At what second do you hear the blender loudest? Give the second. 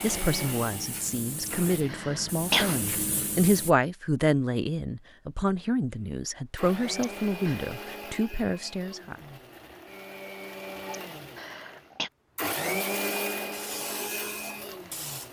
13 s.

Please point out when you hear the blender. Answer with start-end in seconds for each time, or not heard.
0.0-2.0, 6.5-15.2.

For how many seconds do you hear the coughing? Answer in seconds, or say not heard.
3 s.